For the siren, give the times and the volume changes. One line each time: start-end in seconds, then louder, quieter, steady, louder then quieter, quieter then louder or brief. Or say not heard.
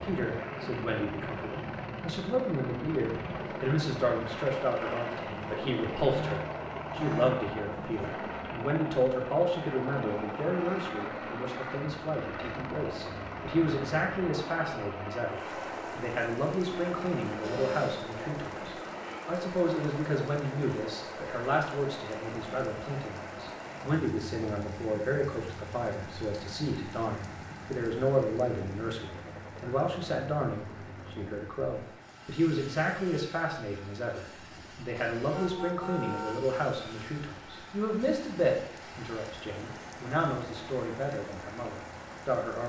not heard.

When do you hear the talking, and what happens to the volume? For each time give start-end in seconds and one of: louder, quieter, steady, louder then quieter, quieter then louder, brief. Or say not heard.
0.0-42.6 steady.